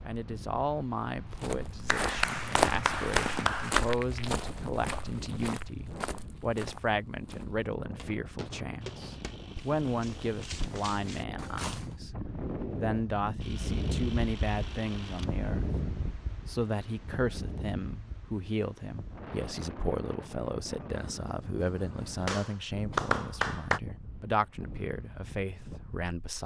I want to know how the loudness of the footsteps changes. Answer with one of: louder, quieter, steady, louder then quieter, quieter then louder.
quieter.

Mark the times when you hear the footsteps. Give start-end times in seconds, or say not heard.
1.3-11.9.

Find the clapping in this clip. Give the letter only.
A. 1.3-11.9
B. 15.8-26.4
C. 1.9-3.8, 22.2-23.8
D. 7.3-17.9
C.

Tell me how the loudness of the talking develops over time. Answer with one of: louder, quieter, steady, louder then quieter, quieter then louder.
steady.